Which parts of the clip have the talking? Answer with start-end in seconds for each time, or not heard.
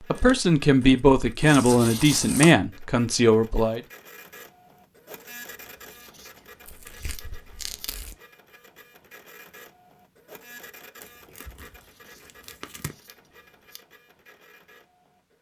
0.1-3.8.